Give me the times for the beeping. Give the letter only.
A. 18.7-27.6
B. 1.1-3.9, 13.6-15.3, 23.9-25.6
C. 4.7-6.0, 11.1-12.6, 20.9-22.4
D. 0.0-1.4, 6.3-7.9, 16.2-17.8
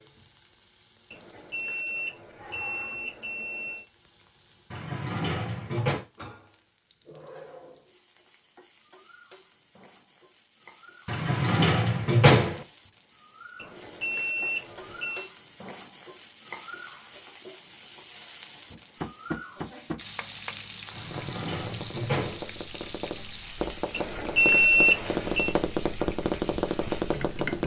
B.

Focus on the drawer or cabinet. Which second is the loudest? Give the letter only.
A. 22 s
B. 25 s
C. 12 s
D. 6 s
C.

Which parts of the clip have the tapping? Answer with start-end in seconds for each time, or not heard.
18.7-27.6.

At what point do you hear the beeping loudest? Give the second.
25 s.